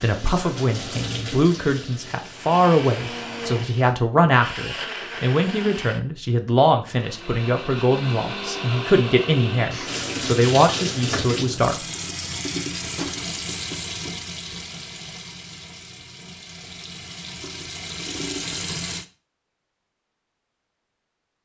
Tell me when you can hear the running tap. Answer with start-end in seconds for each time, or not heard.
0.0-4.0, 9.8-19.1.